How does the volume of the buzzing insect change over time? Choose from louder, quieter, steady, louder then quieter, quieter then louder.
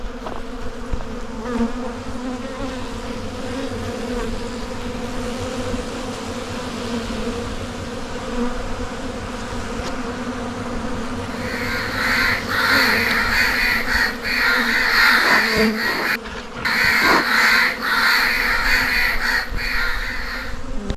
steady.